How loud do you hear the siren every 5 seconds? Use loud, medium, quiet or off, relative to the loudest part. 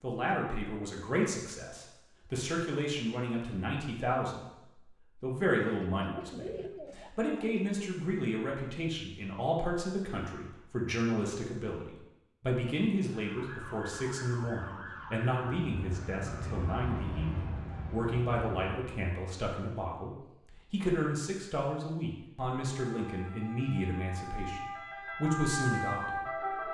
off, off, medium, medium, medium, loud.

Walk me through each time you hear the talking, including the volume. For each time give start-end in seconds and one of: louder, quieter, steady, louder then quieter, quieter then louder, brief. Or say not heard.
0.0-26.6 steady.